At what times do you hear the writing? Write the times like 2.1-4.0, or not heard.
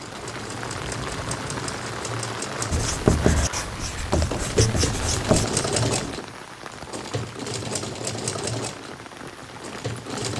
2.7-6.2.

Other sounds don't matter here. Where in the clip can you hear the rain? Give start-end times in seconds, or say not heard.
0.0-10.3.